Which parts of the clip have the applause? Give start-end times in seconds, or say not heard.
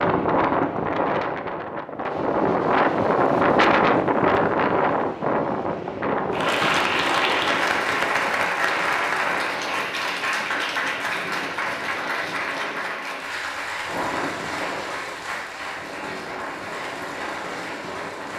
6.3-18.3.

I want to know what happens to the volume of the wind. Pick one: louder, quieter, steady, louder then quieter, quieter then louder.
quieter.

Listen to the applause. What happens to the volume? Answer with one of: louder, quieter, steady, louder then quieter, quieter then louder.
quieter.